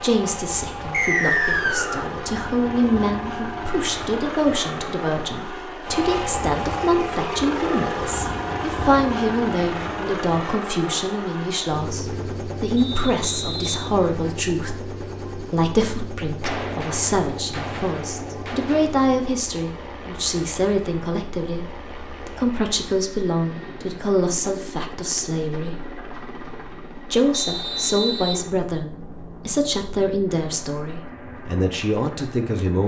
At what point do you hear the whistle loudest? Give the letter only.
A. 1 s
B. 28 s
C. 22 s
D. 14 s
A.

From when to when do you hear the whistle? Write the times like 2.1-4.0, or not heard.
0.9-2.0, 12.8-14.3, 27.3-28.4.